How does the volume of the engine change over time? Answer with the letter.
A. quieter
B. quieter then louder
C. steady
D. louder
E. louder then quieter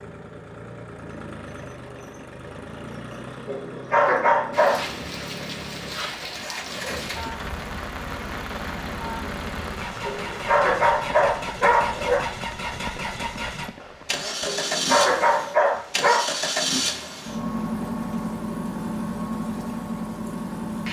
D.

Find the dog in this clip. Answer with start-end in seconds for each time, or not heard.
3.5-4.8, 10.1-12.2, 14.4-16.3.